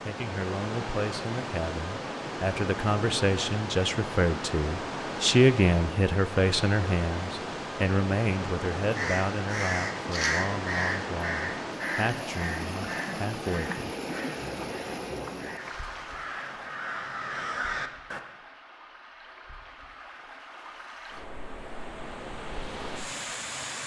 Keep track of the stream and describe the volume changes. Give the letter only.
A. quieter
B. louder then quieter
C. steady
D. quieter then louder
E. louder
A.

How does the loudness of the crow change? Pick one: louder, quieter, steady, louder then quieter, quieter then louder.
quieter then louder.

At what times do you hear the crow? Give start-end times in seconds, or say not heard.
8.8-18.2.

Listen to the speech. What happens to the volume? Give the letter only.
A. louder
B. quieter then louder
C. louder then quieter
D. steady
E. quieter
C.